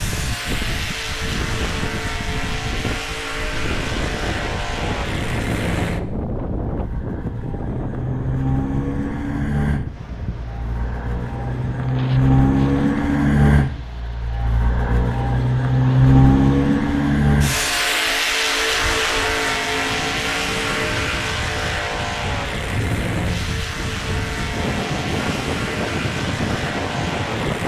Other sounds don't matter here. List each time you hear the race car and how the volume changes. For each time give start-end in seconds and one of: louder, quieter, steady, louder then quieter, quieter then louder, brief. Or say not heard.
0.0-27.6 louder then quieter.